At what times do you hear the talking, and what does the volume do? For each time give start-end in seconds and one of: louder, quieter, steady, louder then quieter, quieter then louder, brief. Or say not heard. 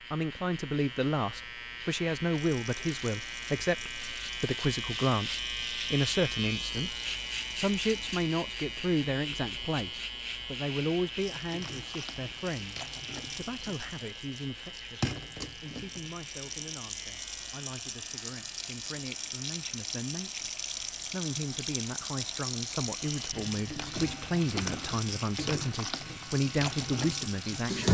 0.1-27.8 quieter then louder.